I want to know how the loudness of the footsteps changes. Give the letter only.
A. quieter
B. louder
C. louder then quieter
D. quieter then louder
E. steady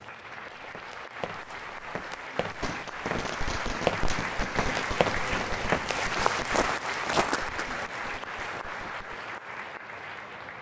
B.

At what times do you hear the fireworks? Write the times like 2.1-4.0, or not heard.
2.6-9.2.